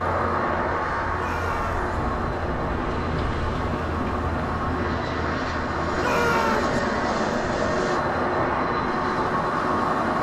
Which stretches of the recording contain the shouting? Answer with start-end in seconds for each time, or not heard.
1.1-1.9, 6.0-6.8.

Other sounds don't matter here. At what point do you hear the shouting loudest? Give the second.
6 s.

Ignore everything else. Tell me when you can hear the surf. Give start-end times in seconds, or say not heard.
0.0-10.1.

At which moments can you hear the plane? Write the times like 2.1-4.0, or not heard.
0.0-10.1.